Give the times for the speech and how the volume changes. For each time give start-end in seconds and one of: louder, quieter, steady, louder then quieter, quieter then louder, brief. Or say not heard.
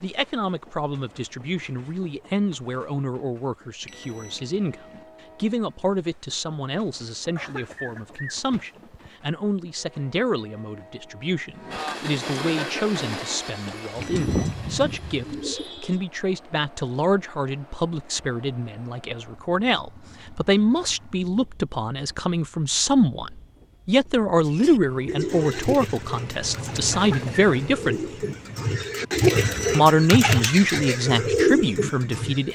0.0-28.0 louder
29.7-32.5 brief.